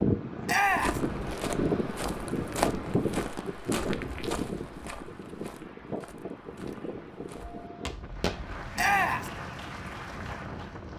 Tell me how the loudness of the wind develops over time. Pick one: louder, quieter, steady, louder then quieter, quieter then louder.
quieter.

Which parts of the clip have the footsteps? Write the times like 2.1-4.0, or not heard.
0.7-8.4.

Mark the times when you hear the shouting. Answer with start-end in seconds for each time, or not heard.
0.5-1.0, 8.8-9.3.